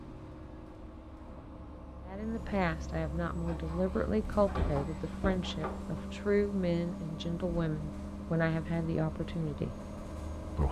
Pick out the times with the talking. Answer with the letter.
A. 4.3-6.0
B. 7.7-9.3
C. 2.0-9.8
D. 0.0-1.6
C.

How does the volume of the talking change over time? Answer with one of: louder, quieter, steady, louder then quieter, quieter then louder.
steady.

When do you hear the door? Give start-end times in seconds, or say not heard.
4.3-6.0.